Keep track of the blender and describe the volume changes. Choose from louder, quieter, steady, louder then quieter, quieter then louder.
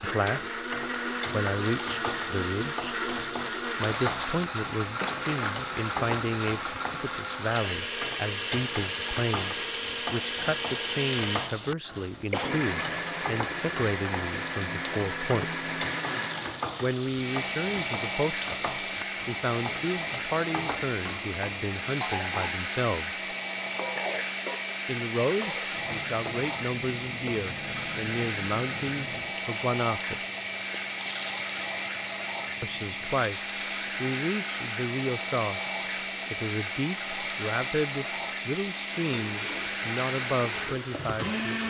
steady.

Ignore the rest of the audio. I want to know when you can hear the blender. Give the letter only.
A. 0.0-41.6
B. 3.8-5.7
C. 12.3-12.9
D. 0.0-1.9
A.